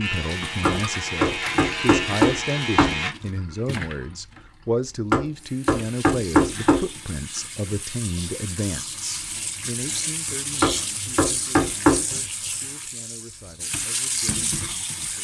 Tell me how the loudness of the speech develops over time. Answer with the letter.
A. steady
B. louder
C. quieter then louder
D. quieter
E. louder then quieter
D.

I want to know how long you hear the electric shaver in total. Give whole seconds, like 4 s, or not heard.
3 s.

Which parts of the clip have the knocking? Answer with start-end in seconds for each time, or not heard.
0.7-3.0, 5.1-6.8, 10.6-12.1.